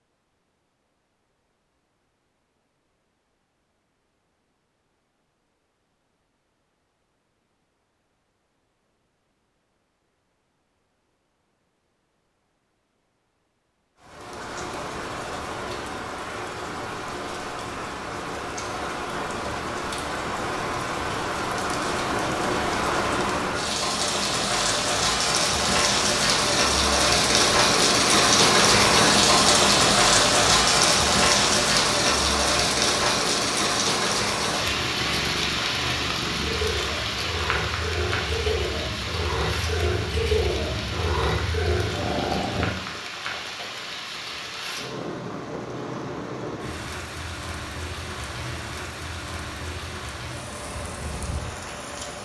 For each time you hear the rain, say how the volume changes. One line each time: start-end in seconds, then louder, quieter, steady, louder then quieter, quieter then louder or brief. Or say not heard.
14.0-52.2 louder then quieter.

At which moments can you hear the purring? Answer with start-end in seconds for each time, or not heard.
34.6-42.7.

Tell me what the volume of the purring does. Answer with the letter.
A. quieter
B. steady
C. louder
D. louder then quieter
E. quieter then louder
C.